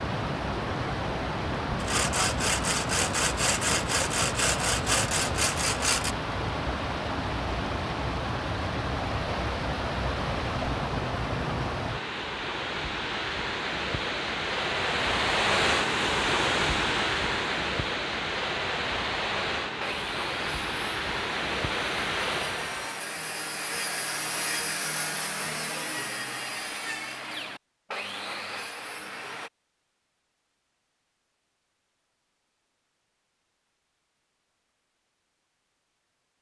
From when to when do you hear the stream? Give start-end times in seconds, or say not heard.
0.0-22.9.